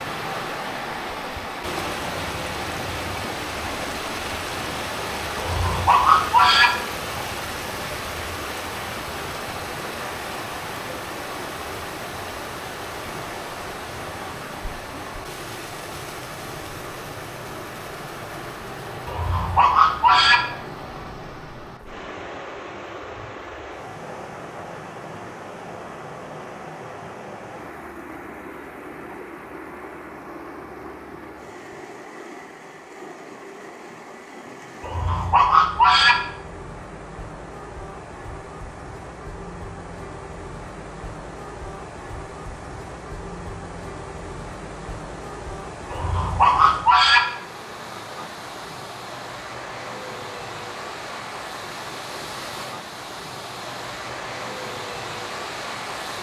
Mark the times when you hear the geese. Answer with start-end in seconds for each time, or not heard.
5.3-6.7, 19.1-20.4, 34.8-36.1, 45.9-47.2.